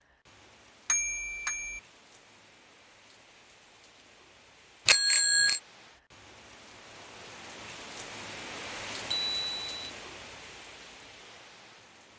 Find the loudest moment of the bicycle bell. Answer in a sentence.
The volume of the bicycle bell peaks at 5 seconds.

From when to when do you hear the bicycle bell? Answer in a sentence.
The bicycle bell can be heard from 0.8 to 1.8 s, from 4.8 to 5.6 s and from 9.1 to 9.9 s.